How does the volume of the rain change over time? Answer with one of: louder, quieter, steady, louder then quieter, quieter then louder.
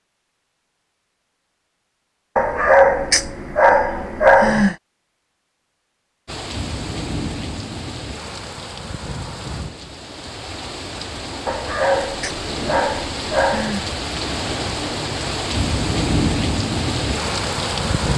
louder.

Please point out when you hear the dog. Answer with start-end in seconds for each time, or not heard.
2.4-4.8, 11.4-13.8.